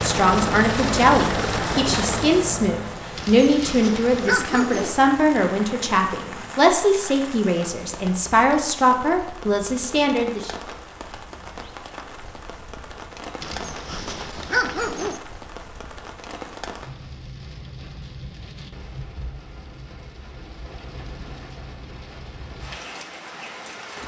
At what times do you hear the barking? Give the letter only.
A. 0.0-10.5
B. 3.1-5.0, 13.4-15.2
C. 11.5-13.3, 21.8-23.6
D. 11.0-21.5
B.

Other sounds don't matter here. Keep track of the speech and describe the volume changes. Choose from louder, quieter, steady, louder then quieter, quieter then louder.
steady.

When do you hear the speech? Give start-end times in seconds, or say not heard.
0.0-10.5.